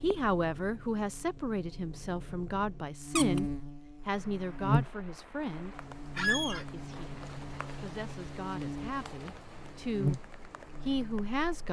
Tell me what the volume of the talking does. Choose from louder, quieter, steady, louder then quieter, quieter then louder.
quieter then louder.